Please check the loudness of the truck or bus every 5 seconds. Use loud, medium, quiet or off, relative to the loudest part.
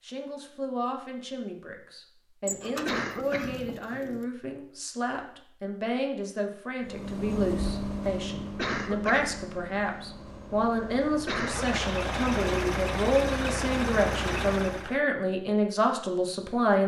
off, loud, loud, off.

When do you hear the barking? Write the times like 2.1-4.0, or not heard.
not heard.